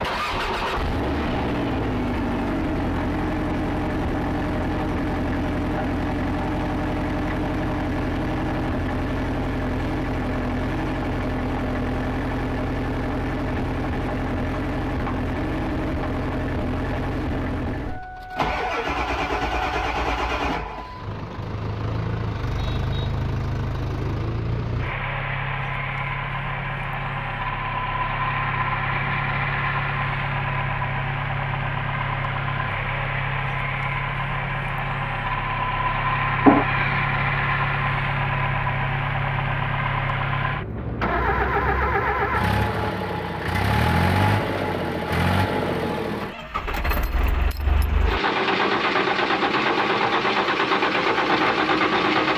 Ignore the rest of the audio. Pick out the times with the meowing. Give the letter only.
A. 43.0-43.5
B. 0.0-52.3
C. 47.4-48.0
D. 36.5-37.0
D.